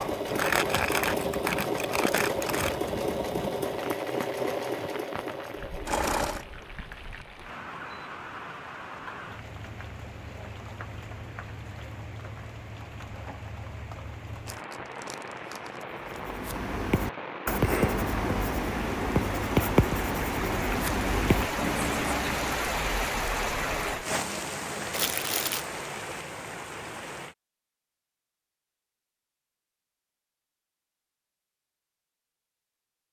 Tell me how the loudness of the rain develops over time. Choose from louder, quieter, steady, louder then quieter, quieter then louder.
louder.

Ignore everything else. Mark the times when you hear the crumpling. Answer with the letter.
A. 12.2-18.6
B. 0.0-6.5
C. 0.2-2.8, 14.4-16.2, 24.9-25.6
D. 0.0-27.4
C.